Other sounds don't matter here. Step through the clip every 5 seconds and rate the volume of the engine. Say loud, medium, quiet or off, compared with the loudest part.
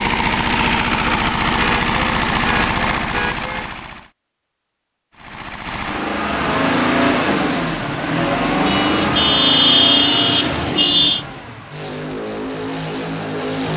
loud, loud, medium.